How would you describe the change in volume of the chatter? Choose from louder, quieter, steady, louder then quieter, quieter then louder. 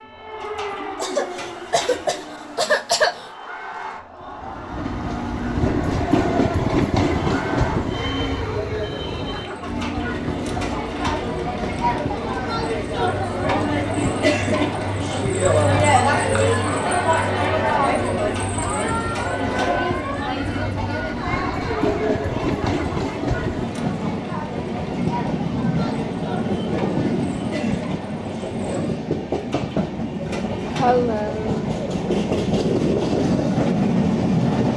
louder then quieter.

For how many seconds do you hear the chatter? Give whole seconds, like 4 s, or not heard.
29 s.